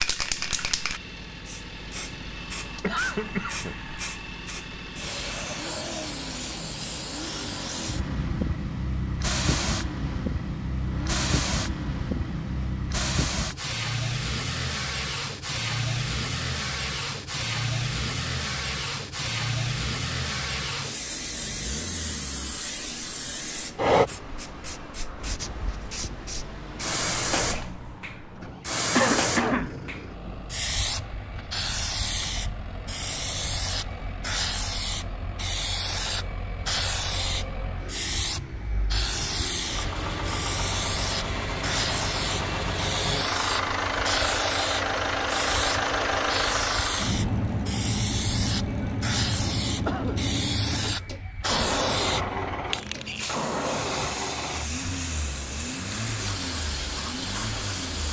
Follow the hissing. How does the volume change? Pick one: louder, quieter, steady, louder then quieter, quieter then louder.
steady.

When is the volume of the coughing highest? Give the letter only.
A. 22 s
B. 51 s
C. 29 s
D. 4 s
C.